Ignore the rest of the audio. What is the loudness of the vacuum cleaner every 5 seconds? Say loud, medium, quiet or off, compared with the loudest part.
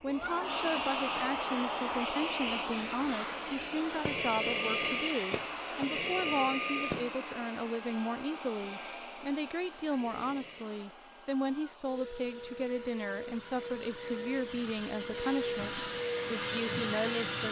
loud, loud, medium, loud.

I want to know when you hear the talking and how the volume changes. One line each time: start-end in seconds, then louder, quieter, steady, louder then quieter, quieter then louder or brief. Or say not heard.
0.0-17.4 steady.